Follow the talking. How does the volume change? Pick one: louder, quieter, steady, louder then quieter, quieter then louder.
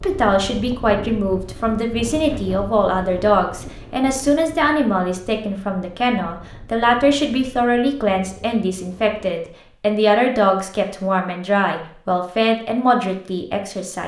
steady.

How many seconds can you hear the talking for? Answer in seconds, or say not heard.
14 s.